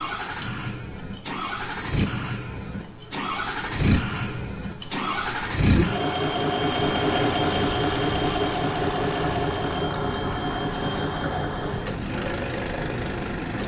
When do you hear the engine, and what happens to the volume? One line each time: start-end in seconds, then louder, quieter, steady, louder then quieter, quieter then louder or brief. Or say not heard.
0.0-13.6 louder then quieter.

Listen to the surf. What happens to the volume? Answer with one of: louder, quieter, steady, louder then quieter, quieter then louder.
steady.